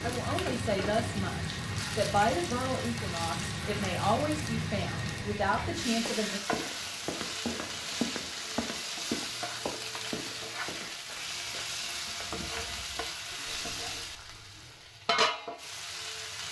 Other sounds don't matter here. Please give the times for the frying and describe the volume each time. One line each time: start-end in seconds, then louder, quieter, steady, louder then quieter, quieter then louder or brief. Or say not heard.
0.0-16.4 steady.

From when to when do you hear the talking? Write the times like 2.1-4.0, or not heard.
0.0-6.4.